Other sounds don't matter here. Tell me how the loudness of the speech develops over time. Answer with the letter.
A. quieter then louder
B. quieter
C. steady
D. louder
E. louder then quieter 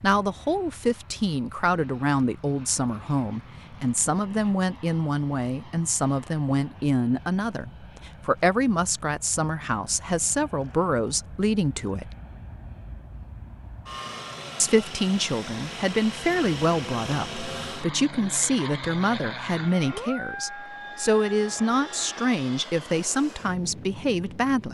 C.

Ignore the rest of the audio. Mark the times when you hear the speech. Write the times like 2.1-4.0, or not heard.
0.0-12.1, 14.6-24.6.